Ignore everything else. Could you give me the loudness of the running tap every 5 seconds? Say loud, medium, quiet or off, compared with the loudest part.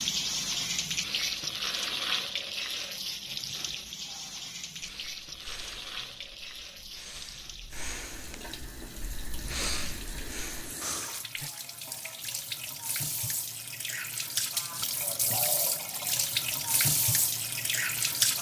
loud, quiet, medium, loud.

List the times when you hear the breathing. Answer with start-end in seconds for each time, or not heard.
4.0-11.5.